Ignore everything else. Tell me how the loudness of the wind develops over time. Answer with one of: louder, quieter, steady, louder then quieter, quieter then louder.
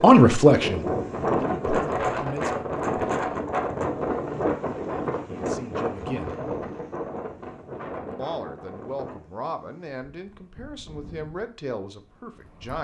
quieter.